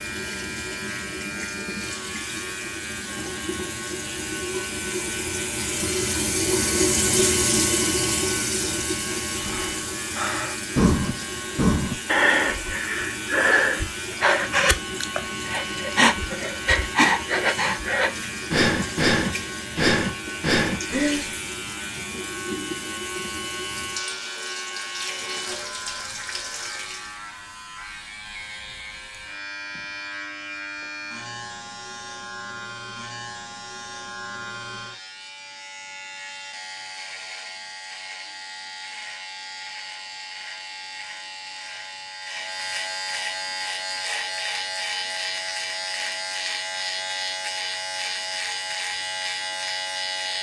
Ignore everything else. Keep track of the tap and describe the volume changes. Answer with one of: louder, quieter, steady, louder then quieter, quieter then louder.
louder then quieter.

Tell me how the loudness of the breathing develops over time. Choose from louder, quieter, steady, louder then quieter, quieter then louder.
steady.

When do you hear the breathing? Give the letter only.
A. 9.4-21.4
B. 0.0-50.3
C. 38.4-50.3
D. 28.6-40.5
A.